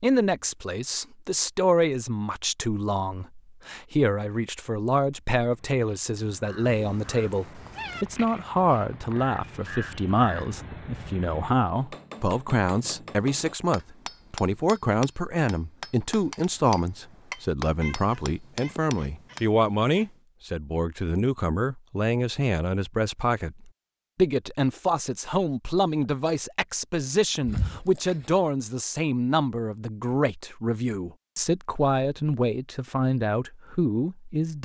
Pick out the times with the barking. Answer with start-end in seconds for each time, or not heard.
not heard.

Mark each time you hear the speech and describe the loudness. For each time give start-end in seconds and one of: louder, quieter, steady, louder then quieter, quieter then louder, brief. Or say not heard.
0.0-34.6 steady.